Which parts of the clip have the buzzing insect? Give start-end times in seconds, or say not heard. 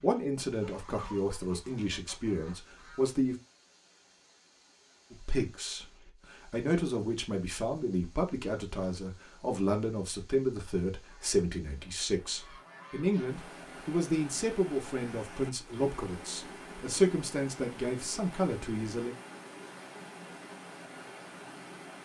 not heard.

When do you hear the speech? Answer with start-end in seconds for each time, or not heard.
0.0-3.4, 5.1-19.1.